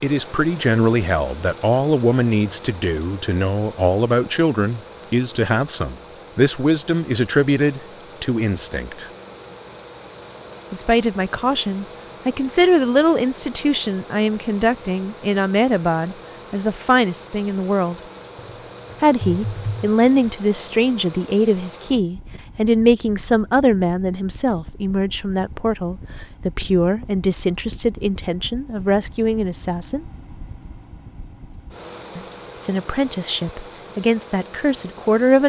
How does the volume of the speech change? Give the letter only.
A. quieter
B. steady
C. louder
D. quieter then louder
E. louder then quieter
B.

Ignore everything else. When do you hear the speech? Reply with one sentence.
The speech can be heard from 0.0 to 9.1 s, from 10.7 to 17.9 s, from 19.0 to 30.1 s and from 32.1 to 35.4 s.